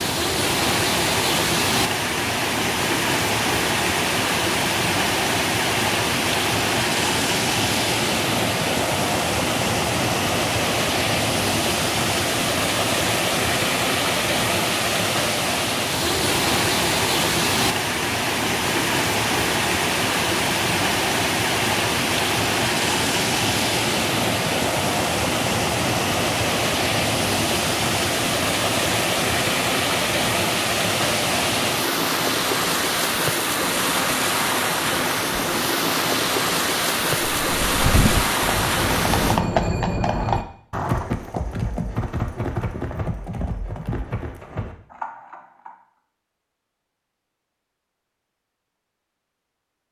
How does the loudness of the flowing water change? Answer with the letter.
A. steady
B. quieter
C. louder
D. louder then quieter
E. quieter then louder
A.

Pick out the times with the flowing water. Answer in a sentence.
The flowing water can be heard from 0.0 to 39.4 s.